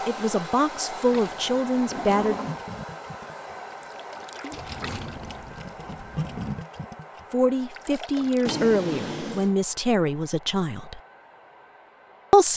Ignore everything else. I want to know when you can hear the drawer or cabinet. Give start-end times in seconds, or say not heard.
1.8-2.6, 4.5-6.7, 8.4-9.6.